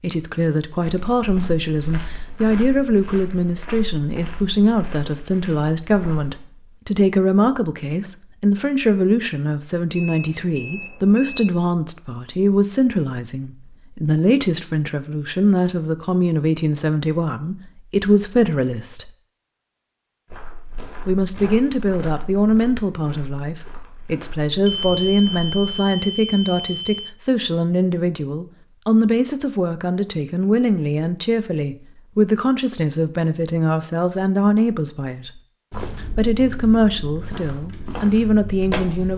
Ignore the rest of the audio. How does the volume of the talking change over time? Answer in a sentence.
The loudness of the talking stays about the same.